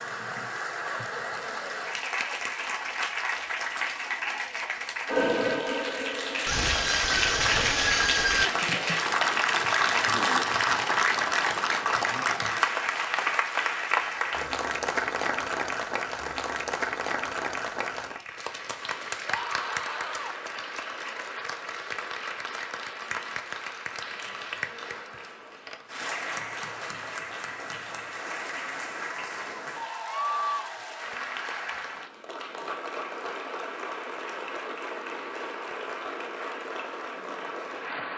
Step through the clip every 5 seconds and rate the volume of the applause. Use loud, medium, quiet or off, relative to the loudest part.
medium, loud, loud, medium, medium, medium, medium, medium.